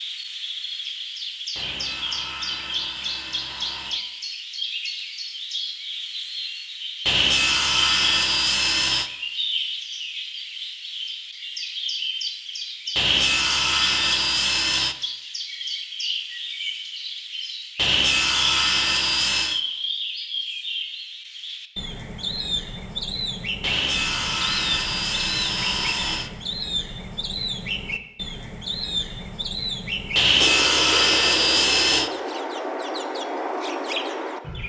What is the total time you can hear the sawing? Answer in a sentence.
The sawing can be heard for 13 seconds in total.